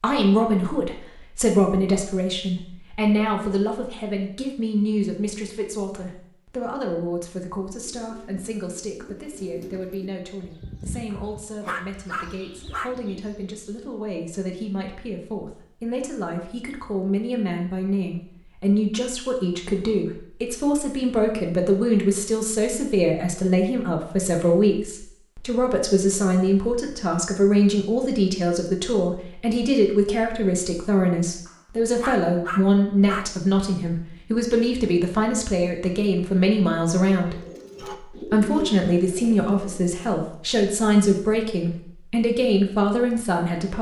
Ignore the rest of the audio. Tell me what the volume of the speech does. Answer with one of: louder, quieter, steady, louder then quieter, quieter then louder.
quieter then louder.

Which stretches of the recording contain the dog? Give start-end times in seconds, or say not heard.
11.1-12.9, 31.4-33.3.